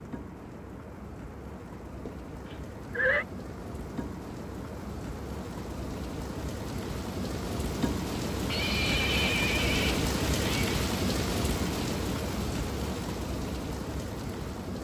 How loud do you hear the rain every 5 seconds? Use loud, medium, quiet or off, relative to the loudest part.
medium, loud, loud.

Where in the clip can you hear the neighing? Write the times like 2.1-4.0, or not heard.
2.0-3.2, 8.4-10.8.